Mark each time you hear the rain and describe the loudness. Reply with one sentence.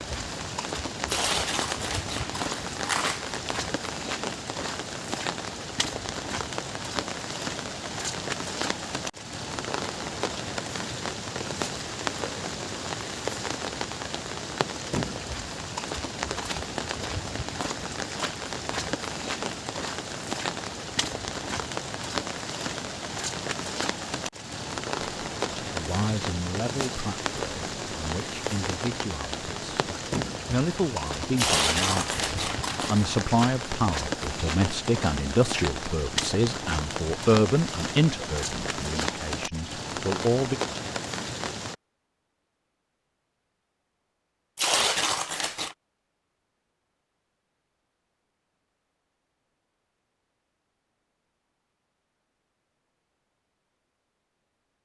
You can hear the rain from 0.0 to 41.8 s, at a steady volume.